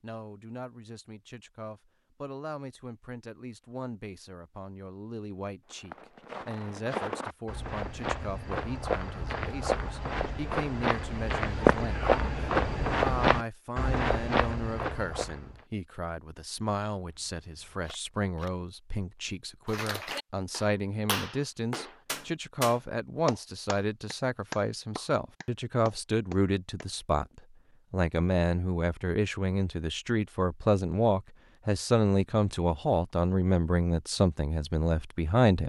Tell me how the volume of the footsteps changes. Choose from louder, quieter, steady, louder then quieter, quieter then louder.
louder then quieter.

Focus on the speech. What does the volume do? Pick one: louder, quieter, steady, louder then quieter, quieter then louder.
louder.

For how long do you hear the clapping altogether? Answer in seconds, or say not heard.
7 s.